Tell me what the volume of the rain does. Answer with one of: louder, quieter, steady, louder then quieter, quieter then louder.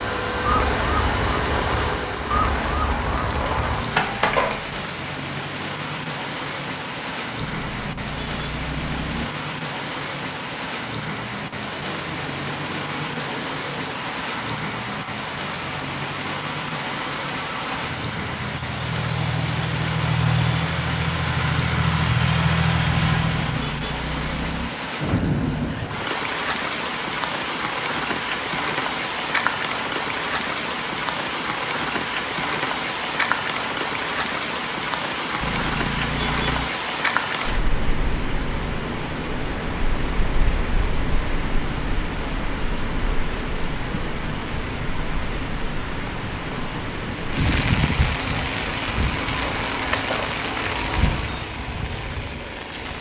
steady.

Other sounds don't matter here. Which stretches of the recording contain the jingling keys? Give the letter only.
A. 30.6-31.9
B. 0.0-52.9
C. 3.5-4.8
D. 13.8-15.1
C.